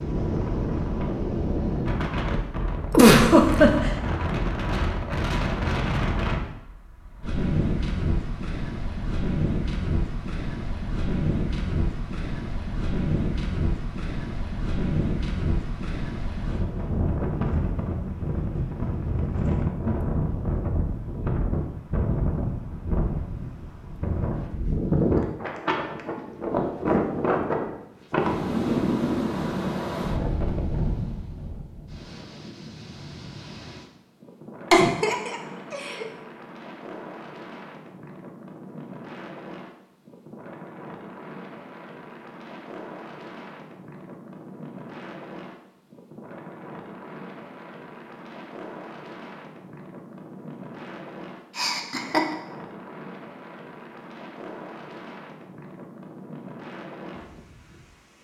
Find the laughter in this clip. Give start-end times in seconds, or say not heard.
2.9-3.9, 34.7-36.0, 51.5-52.4.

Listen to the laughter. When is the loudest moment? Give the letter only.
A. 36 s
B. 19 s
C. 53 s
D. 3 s
D.